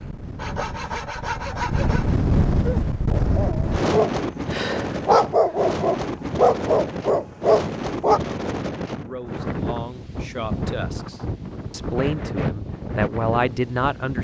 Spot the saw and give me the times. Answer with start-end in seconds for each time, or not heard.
0.3-2.2.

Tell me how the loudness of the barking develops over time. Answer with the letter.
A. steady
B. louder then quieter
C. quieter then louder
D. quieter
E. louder
E.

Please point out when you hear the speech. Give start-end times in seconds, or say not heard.
8.9-14.1.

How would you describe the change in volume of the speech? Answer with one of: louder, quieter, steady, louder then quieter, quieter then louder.
louder.